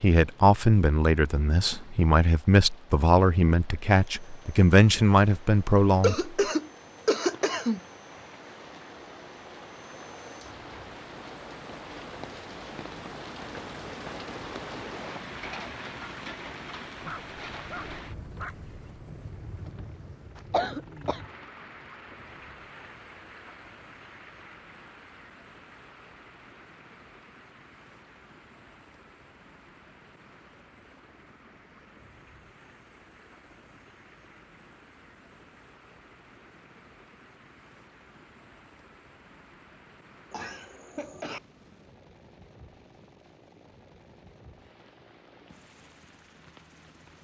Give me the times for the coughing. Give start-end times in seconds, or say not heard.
6.0-7.8, 20.4-21.2, 40.3-41.4.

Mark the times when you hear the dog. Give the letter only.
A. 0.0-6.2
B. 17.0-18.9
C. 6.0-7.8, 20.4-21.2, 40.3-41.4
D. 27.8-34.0
B.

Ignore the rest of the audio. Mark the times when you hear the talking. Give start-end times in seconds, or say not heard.
0.0-6.2.